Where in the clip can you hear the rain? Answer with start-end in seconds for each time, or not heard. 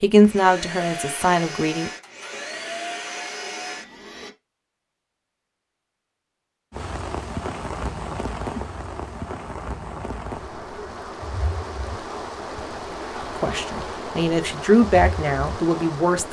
6.7-16.2.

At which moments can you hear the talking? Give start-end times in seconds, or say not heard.
0.0-1.9, 13.3-16.2.